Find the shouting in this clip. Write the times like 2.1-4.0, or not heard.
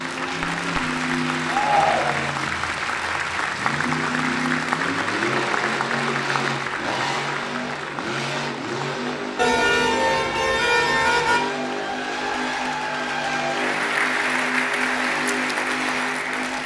1.4-2.4.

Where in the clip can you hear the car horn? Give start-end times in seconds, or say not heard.
9.3-11.4.